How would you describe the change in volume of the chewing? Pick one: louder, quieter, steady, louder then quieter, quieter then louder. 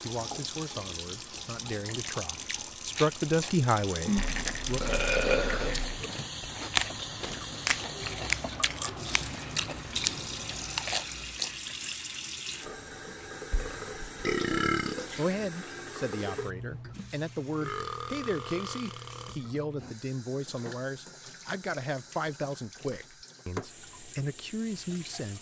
louder.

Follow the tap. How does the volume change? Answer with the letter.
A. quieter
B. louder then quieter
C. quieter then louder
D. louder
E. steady
A.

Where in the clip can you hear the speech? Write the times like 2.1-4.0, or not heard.
0.0-4.8, 15.2-25.3.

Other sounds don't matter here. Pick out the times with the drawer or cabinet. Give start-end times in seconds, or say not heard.
not heard.